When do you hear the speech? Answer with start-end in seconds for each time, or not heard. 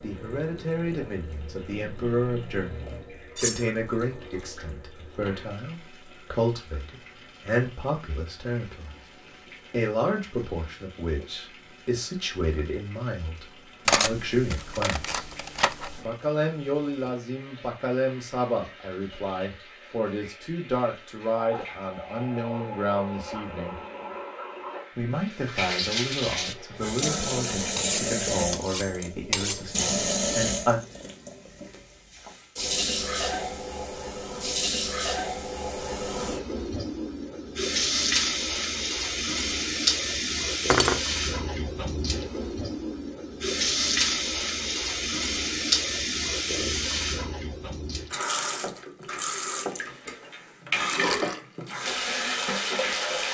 0.0-8.9, 9.7-15.2, 16.0-23.8, 24.9-30.9.